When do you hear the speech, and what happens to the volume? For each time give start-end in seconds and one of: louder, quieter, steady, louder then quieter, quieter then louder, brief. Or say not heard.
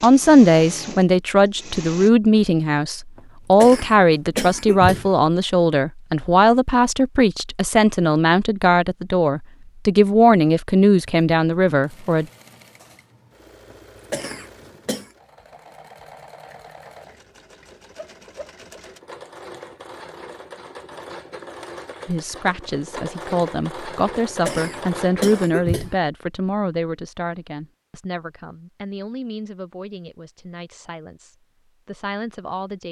0.0-12.2 steady
22.1-32.8 quieter.